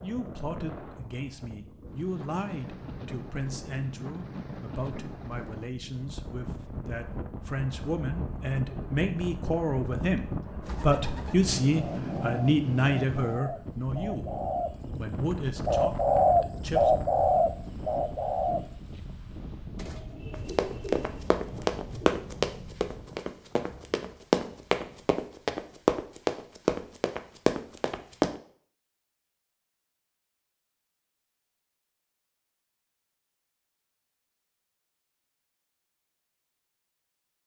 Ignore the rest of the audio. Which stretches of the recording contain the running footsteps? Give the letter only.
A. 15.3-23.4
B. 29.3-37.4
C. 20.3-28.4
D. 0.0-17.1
C.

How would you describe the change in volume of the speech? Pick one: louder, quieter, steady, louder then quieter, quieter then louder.
louder then quieter.